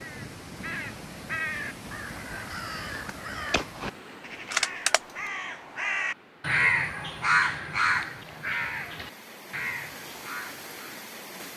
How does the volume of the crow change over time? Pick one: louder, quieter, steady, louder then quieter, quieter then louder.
louder then quieter.